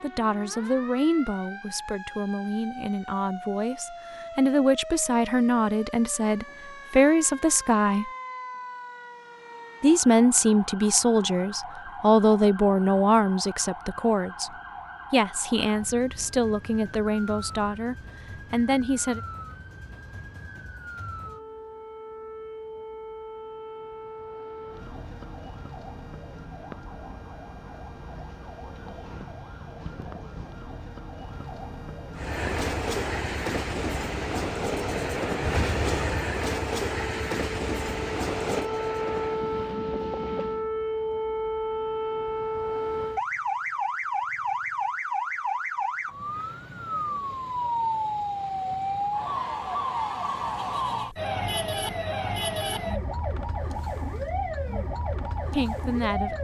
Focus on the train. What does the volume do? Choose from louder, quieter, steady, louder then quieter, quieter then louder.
quieter.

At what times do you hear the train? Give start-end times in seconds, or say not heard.
32.1-40.7.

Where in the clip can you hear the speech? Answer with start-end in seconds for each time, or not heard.
0.0-8.1, 9.8-14.5, 15.1-19.2, 55.5-56.3.